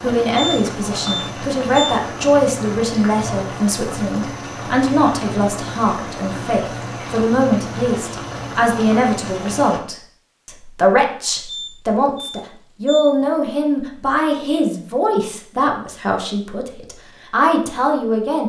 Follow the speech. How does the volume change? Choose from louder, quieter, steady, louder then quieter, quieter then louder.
steady.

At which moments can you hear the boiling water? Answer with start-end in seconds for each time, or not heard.
0.0-9.8.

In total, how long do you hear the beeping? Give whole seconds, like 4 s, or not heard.
3 s.